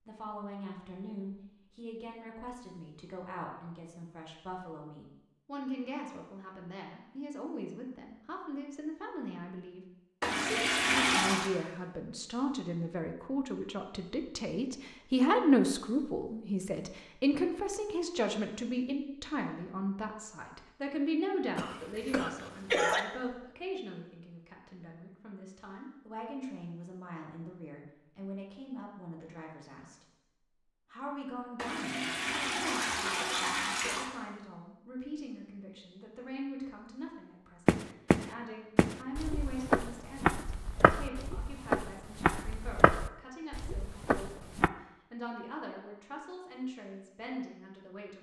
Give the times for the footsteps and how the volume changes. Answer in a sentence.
You can hear the footsteps from 37.6 to 44.7 s, getting quieter.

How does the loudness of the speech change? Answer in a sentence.
The volume of the speech goes up, then down.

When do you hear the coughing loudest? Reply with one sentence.
The volume of the coughing peaks at 23 seconds.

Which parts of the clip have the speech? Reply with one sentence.
The speech can be heard from 0.1 to 30.1 s and from 30.9 to 48.1 s.